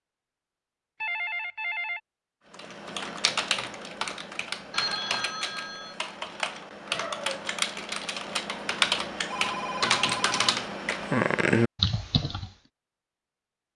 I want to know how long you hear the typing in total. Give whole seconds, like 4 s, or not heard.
10 s.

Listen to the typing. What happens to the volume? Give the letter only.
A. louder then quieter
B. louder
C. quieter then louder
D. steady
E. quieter
B.